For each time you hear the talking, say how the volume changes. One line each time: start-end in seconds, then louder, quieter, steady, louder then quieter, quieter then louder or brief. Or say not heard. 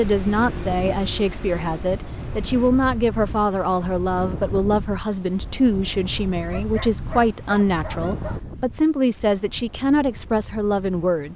0.0-11.3 steady.